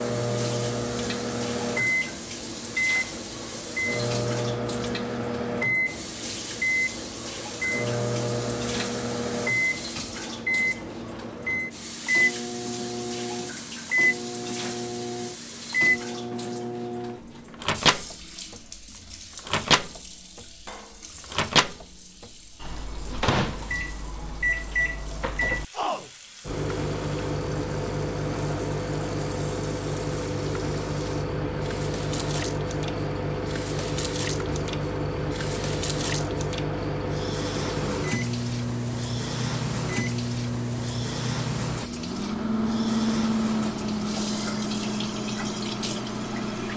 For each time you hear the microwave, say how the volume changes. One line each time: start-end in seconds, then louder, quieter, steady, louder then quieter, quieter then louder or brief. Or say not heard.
0.0-46.7 steady.